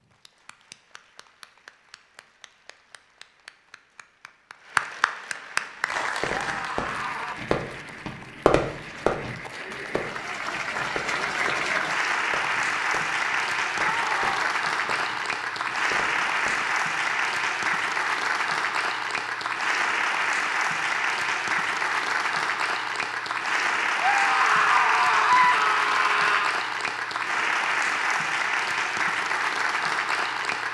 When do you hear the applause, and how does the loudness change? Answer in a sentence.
The applause can be heard from 0.0 to 30.7 s, getting louder.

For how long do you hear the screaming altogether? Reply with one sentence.
You can hear the screaming for 4 seconds altogether.